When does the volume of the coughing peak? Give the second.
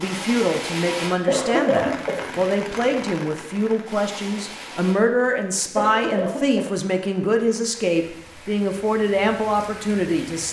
2 s.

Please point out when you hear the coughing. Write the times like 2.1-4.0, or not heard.
1.2-2.2, 5.8-6.7.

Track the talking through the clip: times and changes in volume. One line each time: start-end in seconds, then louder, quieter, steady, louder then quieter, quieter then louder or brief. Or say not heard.
0.0-10.4 steady.